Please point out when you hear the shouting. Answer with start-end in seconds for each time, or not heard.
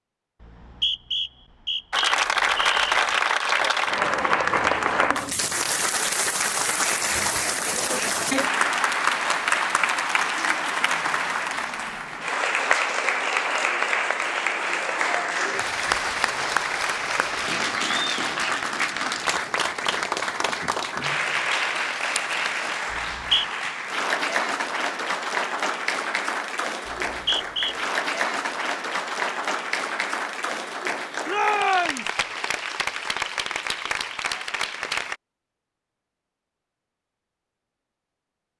31.2-32.1.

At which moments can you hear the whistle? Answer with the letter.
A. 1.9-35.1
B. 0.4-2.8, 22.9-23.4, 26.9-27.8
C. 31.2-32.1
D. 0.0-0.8
B.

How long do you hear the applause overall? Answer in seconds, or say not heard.
33 s.